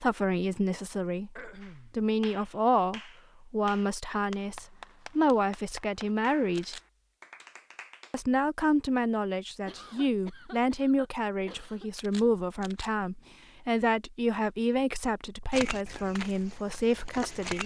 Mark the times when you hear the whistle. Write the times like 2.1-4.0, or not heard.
not heard.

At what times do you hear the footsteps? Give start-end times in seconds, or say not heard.
15.5-17.6.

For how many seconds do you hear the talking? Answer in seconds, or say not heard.
16 s.